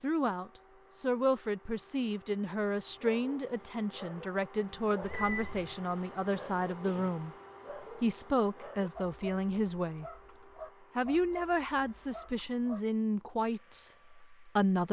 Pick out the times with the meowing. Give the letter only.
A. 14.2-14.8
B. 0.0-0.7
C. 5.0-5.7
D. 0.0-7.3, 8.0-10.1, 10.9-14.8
C.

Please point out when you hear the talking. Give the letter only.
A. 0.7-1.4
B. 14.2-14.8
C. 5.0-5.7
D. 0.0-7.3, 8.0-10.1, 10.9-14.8
D.